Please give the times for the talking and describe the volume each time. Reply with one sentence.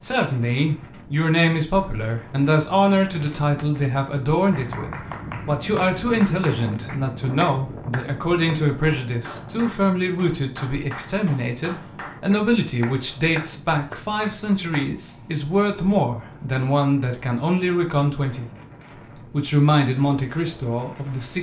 You can hear the talking from 0.0 to 18.5 s, at a steady volume; and briefly from 19.2 to 21.3 s.